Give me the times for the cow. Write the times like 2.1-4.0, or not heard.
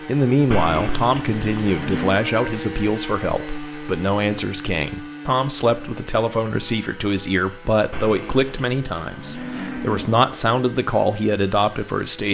0.5-2.2, 7.9-10.2.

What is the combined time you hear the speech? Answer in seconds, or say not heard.
12 s.